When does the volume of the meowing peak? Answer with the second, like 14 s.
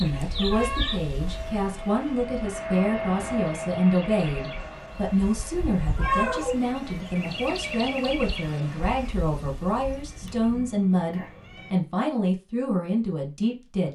6 s.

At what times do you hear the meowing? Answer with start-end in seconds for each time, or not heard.
0.1-1.5, 6.0-6.7, 9.7-11.8.